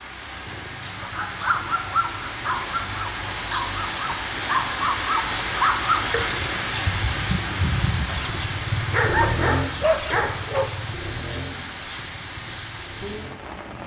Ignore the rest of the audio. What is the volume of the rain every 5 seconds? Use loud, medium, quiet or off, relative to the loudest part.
loud, loud, medium.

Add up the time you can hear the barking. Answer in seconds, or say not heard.
10 s.